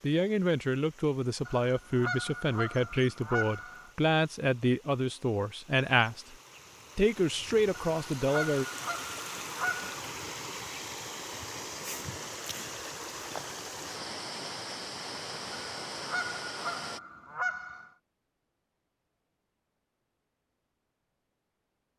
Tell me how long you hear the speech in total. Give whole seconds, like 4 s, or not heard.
8 s.